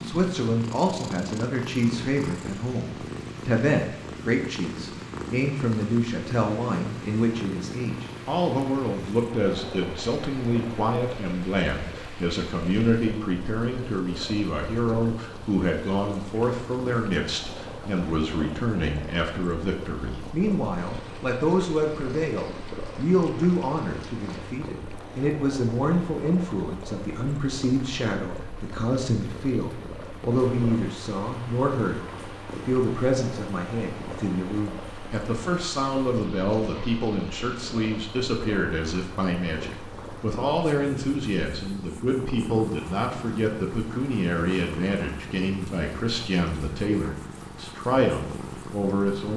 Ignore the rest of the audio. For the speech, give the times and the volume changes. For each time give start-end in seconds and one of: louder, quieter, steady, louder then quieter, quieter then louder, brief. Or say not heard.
0.0-49.3 steady.